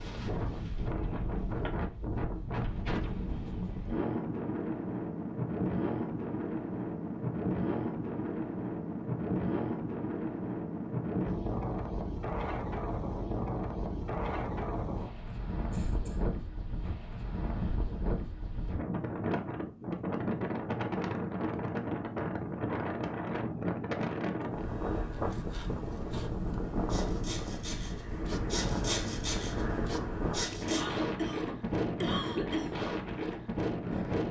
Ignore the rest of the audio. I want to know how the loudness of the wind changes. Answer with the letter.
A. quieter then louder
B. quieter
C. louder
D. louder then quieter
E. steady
E.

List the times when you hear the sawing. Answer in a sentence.
You can hear the sawing from 24.4 to 30.9 s.